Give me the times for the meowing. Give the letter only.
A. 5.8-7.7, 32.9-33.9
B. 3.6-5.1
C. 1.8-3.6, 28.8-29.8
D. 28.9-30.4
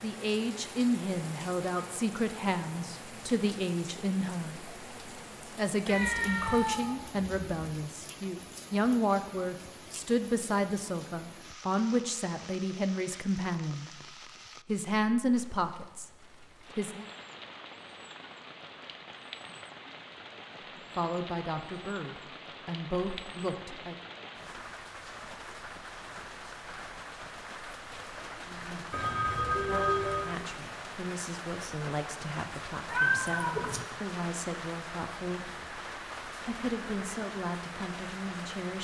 A.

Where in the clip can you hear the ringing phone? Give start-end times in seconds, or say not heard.
28.9-30.4.